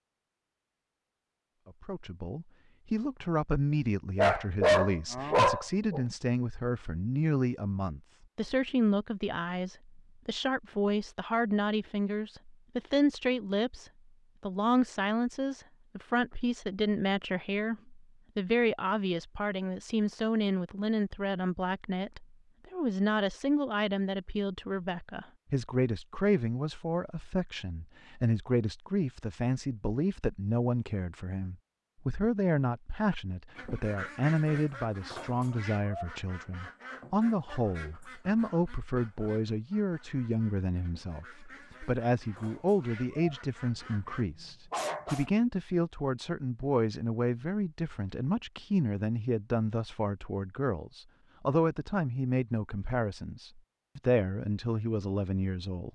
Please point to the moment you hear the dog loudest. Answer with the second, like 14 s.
5 s.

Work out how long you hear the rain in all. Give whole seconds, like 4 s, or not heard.
not heard.